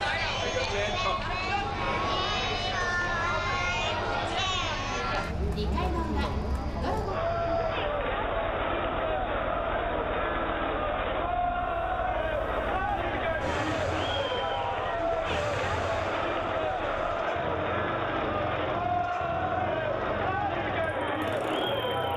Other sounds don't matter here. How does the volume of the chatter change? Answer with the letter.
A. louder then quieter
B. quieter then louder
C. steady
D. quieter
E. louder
C.